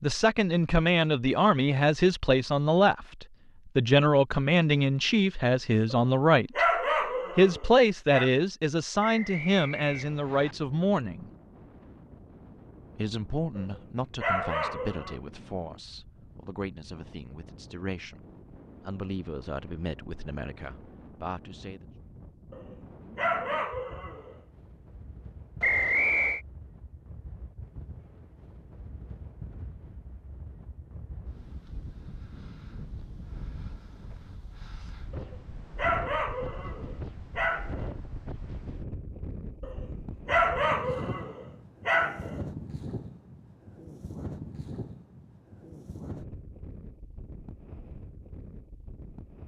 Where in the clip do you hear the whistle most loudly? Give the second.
26 s.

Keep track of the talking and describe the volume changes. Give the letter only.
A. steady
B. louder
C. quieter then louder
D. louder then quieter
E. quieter
E.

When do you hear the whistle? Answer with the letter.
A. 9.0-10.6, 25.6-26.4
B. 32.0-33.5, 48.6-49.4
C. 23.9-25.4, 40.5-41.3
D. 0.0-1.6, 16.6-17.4
A.